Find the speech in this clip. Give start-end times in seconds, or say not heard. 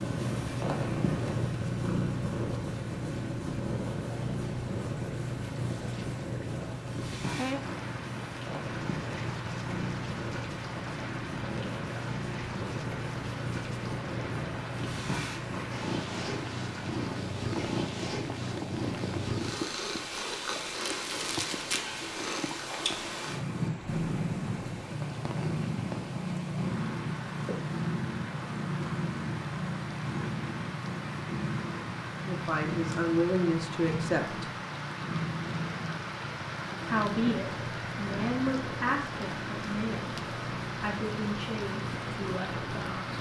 32.2-34.5, 36.9-43.1.